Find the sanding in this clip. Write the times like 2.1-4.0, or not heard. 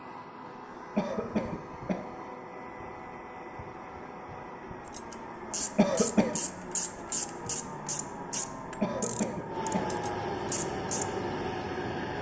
not heard.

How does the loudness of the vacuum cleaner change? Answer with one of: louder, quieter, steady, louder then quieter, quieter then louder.
louder.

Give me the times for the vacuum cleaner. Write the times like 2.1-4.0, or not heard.
0.0-12.1.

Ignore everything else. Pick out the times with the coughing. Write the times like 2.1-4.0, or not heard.
0.9-2.0, 5.8-6.4, 8.8-9.9.